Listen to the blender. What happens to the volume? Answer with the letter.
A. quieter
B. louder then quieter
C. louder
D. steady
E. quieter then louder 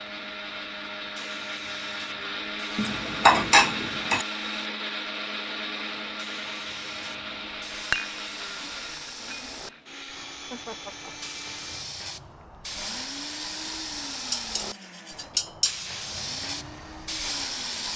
A.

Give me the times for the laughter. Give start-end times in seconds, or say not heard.
10.5-11.3.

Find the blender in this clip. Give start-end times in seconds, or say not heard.
0.0-17.9.